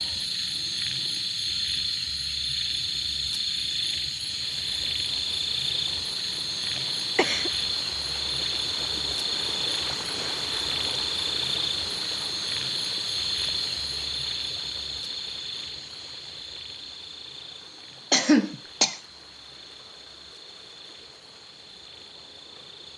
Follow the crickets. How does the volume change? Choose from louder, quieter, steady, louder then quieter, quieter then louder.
quieter.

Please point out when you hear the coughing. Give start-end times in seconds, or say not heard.
6.8-7.5, 18.1-19.0.